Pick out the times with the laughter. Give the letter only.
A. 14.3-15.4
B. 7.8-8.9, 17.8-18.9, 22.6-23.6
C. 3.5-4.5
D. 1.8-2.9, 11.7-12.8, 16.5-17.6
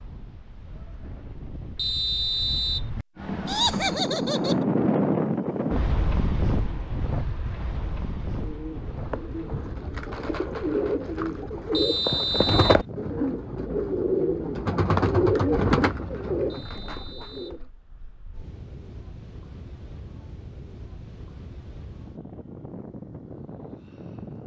C.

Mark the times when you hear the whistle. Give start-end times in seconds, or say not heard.
1.8-2.9, 11.7-12.8, 16.5-17.6.